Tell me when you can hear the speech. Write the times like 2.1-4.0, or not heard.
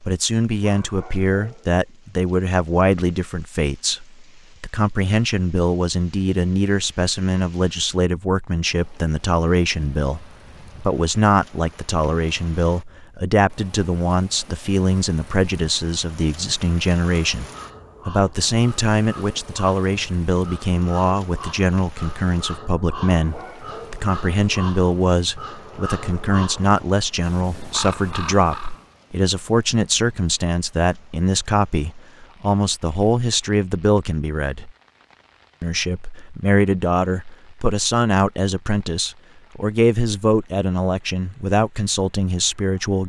0.0-17.4, 18.1-34.7, 35.6-43.0.